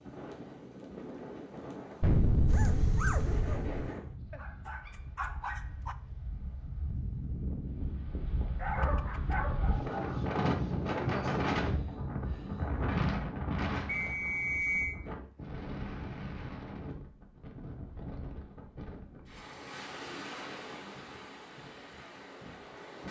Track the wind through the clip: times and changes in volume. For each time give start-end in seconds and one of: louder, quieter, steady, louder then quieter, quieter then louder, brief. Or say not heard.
0.0-23.0 louder then quieter.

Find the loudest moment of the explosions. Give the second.
2 s.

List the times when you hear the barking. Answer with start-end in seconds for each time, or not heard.
2.5-6.0, 8.6-10.2.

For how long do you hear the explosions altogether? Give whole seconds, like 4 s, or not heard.
2 s.